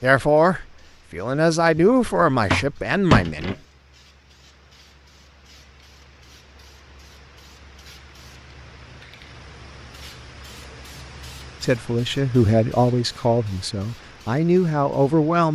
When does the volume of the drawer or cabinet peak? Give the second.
3 s.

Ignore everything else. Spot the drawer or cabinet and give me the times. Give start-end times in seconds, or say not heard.
1.8-3.6.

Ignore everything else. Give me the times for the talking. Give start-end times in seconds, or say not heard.
0.0-3.5, 11.6-15.5.